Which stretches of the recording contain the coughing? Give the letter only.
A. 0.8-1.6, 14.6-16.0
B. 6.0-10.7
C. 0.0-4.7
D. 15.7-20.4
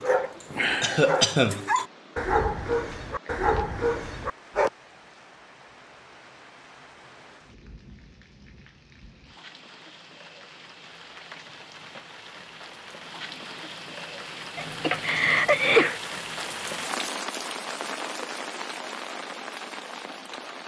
A.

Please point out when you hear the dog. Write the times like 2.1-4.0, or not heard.
0.0-4.7.